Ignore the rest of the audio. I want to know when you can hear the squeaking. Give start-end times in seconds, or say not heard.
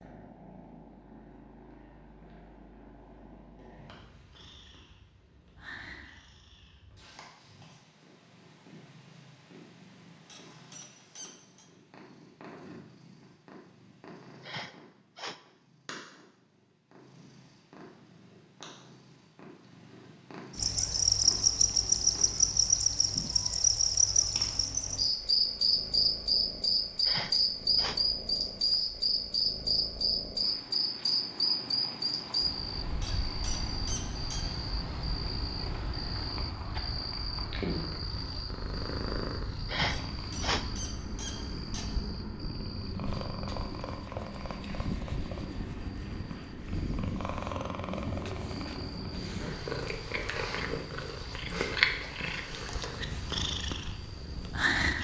10.2-11.7, 33.0-34.5, 39.9-41.9.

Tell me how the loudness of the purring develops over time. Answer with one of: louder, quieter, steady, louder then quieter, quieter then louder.
louder.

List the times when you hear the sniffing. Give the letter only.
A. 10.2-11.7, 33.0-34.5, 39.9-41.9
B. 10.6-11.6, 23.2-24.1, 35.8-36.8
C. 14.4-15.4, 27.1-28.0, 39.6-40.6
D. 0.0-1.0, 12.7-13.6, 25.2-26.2
C.